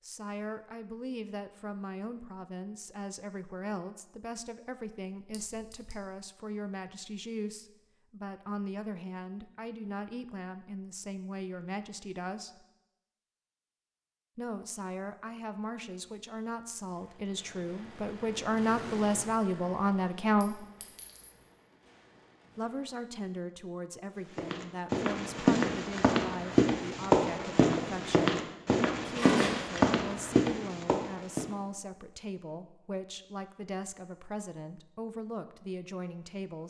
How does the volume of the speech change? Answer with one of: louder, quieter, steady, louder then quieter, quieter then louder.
louder then quieter.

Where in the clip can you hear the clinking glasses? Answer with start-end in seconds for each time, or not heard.
5.3-6.0, 20.4-21.3, 29.1-29.9.